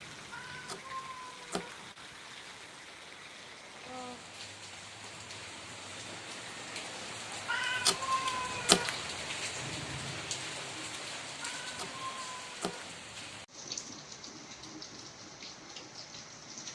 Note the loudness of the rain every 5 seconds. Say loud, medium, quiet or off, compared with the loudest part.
medium, loud, loud, medium.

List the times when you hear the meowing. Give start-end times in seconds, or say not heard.
0.3-1.8, 7.5-8.9, 11.4-12.8.